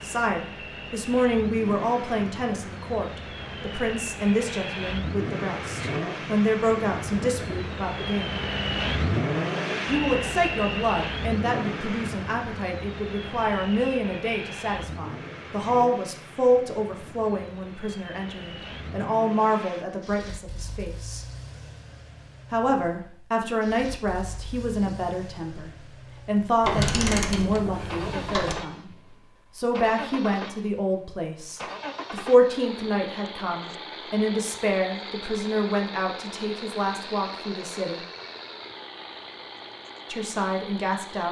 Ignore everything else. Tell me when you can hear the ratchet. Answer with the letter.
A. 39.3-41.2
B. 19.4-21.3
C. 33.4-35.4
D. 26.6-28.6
D.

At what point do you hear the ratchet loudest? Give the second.
27 s.